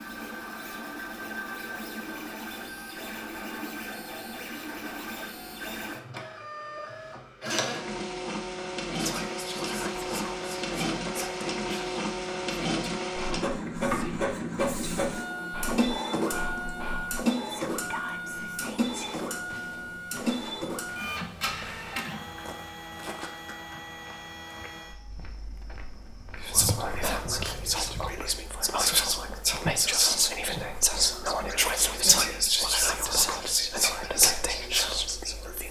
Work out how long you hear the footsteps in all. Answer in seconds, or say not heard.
10 s.